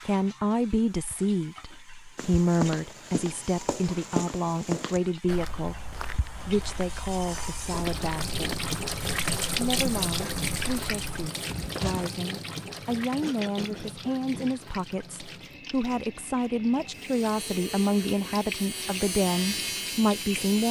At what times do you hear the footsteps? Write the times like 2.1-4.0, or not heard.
2.1-12.1.